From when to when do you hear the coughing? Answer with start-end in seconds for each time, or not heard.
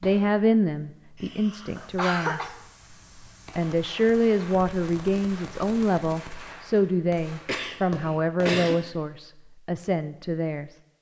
1.2-2.5, 7.5-8.8.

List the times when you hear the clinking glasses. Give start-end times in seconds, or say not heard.
not heard.